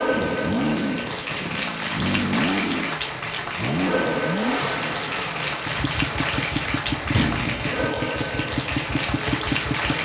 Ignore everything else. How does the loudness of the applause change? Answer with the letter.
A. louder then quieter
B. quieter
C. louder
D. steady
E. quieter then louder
D.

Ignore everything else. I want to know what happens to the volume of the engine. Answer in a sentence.
The volume of the engine stays about the same.